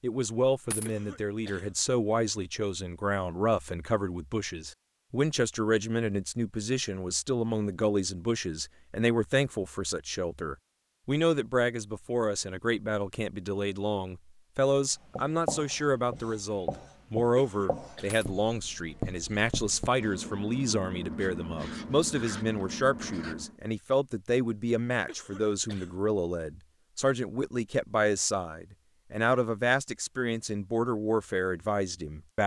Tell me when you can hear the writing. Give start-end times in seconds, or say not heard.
15.2-23.6.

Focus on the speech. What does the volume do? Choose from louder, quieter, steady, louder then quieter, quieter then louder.
steady.